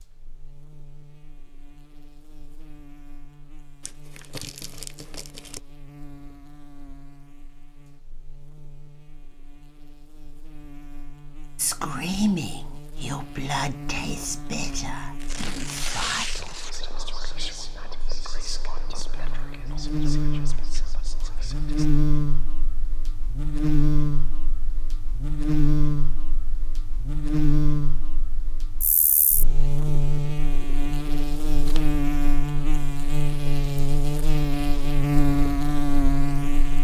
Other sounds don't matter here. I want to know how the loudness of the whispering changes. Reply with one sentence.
The volume of the whispering goes down.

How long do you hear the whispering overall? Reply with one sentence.
The whispering can be heard for 10 seconds in total.